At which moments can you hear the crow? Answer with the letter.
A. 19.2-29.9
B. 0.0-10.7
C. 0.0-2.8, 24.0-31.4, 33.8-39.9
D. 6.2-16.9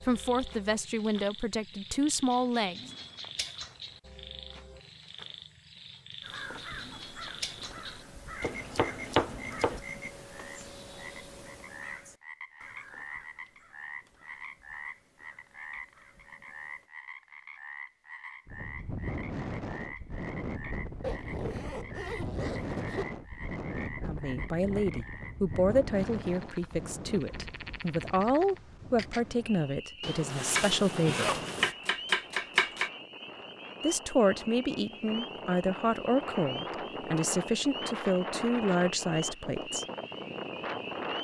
D.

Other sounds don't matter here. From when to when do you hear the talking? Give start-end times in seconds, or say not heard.
0.0-2.8, 24.0-31.4, 33.8-39.9.